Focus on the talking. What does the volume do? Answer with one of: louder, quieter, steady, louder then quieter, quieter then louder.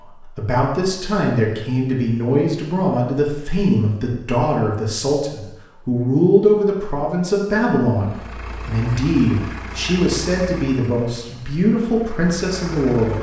steady.